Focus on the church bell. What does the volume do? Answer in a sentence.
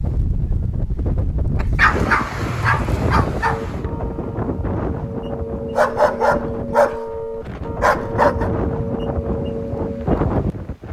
The loudness of the church bell goes up.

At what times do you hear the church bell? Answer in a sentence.
The church bell can be heard from 3.4 to 10.1 s.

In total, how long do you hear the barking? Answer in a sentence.
The barking can be heard for 5 seconds in total.